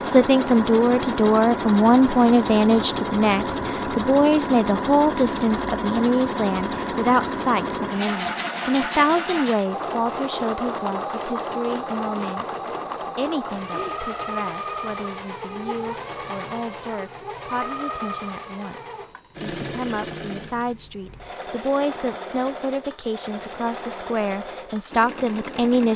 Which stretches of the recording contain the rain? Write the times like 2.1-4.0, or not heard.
not heard.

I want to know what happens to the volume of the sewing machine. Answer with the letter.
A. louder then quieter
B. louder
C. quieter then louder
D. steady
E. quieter
E.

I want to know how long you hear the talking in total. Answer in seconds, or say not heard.
26 s.